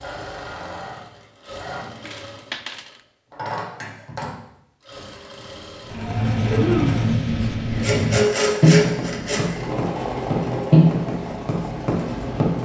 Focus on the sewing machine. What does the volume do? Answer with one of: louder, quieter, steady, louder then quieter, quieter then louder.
louder then quieter.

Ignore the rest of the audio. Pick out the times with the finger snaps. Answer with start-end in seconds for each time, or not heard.
6.4-7.0.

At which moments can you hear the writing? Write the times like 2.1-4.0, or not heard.
5.9-12.6.